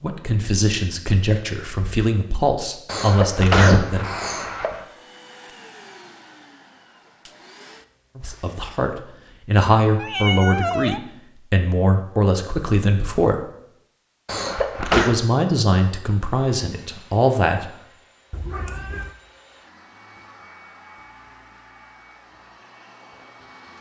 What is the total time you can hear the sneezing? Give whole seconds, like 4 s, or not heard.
3 s.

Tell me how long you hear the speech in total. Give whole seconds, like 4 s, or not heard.
12 s.